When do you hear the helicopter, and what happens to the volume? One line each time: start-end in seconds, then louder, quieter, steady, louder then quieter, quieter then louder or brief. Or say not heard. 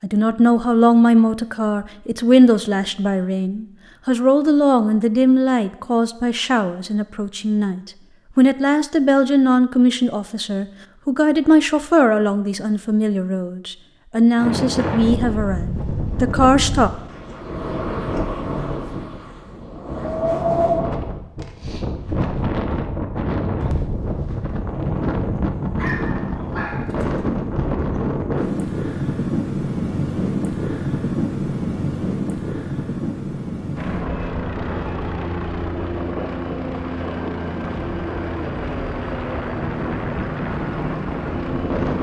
33.8-41.9 steady.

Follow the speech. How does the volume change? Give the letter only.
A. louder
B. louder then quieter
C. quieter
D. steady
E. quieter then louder
D.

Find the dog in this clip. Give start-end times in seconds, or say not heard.
25.8-27.1.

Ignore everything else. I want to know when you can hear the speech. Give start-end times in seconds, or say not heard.
0.0-16.9.